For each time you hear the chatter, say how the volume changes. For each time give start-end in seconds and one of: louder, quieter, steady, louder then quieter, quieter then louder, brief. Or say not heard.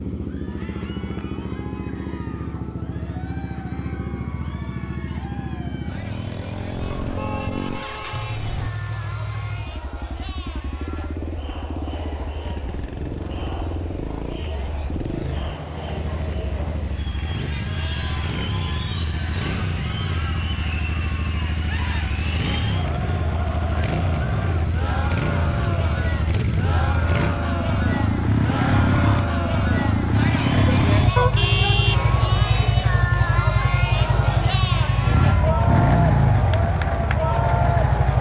0.1-38.1 louder.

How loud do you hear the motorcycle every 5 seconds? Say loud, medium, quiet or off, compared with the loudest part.
medium, medium, quiet, medium, medium, loud, loud, loud.